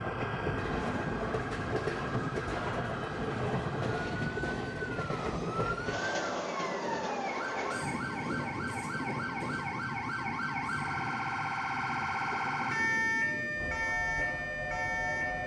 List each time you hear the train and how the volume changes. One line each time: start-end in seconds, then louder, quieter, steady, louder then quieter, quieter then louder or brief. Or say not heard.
0.0-15.4 quieter.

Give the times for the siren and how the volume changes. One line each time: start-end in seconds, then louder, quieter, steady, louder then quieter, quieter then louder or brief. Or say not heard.
0.0-15.4 louder.